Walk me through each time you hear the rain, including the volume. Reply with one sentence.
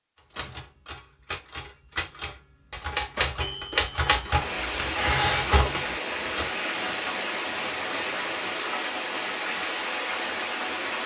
You can hear the rain from 4.3 to 11.0 s, at a steady volume.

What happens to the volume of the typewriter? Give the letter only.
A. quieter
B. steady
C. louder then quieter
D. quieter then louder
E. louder
E.